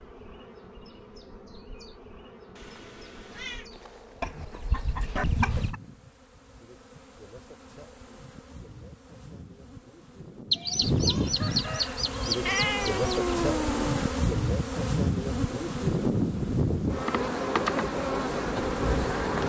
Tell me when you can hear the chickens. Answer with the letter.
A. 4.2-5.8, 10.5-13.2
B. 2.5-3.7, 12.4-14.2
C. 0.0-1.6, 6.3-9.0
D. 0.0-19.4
A.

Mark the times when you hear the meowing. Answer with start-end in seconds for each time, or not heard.
2.5-3.7, 12.4-14.2.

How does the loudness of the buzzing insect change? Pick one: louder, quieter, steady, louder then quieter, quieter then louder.
louder.